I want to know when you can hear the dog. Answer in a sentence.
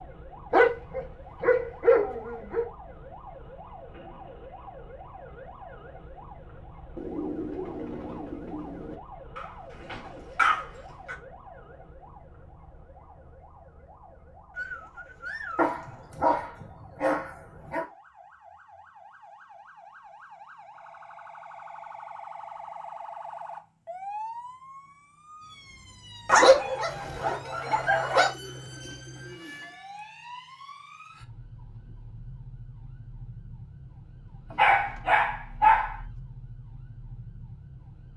The dog can be heard from 0.5 to 2.6 s, from 9.3 to 11.2 s, from 15.6 to 17.9 s, from 26.2 to 28.3 s and from 34.5 to 36.0 s.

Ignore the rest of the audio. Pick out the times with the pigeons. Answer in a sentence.
You can hear the pigeons from 7.0 to 8.9 s, from 14.5 to 16.1 s and from 26.9 to 29.8 s.